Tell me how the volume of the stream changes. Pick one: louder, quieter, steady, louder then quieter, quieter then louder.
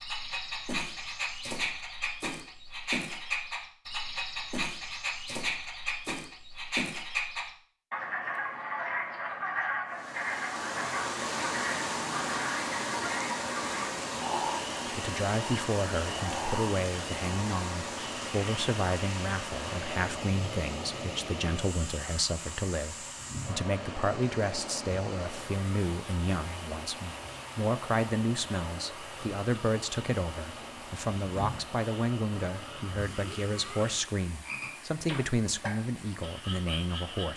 quieter.